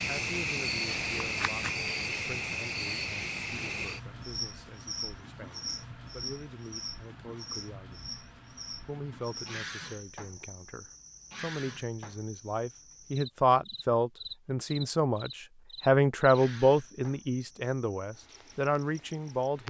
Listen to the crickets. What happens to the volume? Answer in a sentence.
The volume of the crickets goes down.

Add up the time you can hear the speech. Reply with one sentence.
You can hear the speech for 19 seconds altogether.